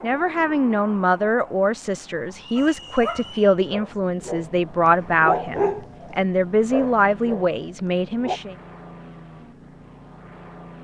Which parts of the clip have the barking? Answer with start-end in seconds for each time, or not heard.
2.5-8.4.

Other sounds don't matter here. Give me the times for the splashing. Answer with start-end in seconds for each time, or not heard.
not heard.